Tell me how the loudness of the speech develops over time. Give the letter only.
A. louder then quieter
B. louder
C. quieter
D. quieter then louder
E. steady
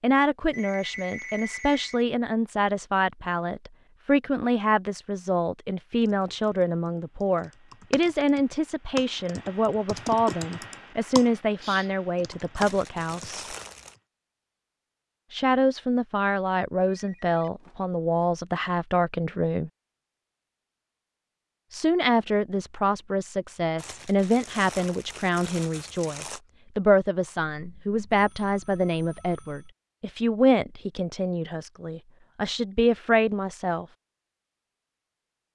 E.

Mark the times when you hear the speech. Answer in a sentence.
You can hear the speech from 0.0 to 13.4 s, from 15.3 to 19.7 s and from 21.7 to 33.9 s.